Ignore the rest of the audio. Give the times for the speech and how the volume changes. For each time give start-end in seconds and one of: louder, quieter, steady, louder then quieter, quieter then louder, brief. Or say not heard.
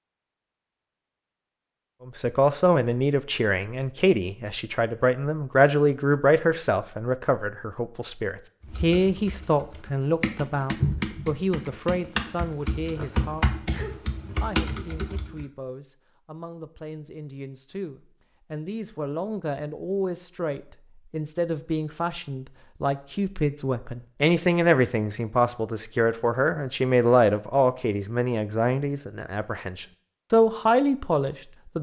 2.0-31.7 quieter then louder.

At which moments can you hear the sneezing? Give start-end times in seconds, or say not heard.
13.5-14.0.